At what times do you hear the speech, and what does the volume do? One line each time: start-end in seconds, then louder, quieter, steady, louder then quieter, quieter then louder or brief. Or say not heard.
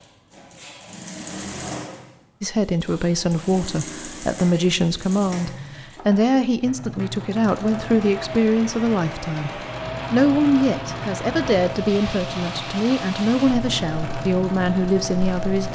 2.4-15.6 steady.